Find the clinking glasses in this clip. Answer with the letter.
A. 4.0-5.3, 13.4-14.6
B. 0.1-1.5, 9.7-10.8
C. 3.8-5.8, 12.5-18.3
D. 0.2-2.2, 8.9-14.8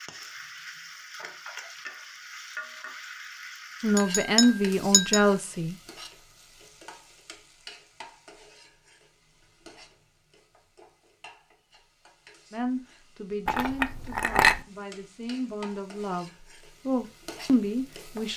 A.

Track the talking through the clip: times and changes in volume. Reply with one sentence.
The talking can be heard briefly from 3.8 to 5.8 s; and from 12.5 to 18.3 s, getting quieter then louder.